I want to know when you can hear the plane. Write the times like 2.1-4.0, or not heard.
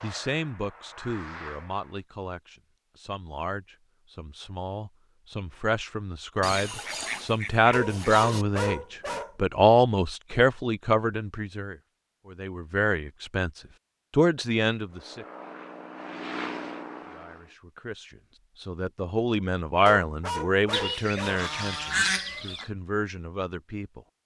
0.0-2.0, 14.9-17.6.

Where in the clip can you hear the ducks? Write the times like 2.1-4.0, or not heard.
6.4-8.4, 20.7-22.7.